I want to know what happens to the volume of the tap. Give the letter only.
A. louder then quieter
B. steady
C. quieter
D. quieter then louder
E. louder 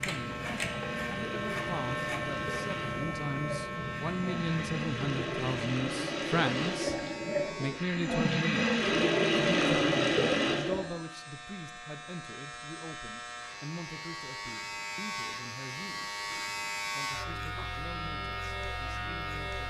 E.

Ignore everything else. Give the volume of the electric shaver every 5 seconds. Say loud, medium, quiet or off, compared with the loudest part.
loud, medium, medium, loud.